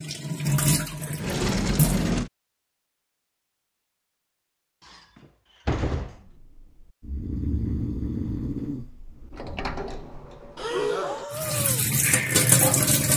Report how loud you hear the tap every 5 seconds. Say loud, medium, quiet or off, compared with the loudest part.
loud, off, loud.